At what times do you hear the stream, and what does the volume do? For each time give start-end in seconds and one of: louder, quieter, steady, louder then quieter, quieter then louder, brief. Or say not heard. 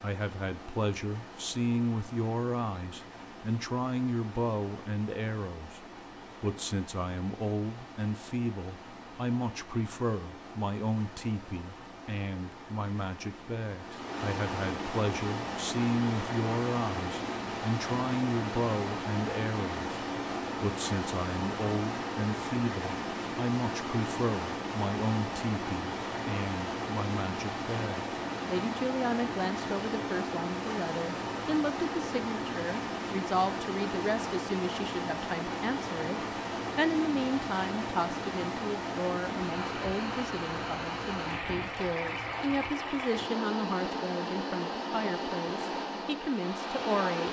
0.0-47.2 louder.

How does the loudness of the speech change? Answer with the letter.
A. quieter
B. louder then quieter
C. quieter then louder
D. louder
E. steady
E.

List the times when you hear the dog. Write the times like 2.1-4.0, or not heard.
not heard.